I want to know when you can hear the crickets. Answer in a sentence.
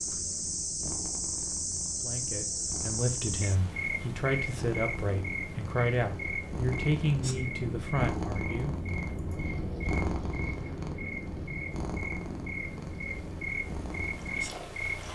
The crickets can be heard from 0.0 to 15.1 s.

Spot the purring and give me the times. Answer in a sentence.
You can hear the purring from 0.0 to 15.1 s.